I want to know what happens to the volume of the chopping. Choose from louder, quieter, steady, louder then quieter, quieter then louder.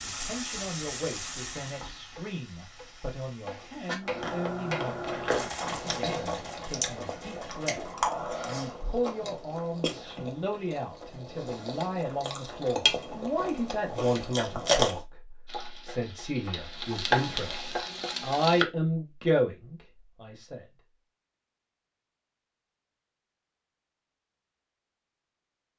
louder then quieter.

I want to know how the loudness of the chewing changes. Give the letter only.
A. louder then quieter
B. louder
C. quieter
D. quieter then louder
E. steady
D.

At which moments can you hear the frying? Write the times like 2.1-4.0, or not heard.
0.0-4.0, 15.4-18.6.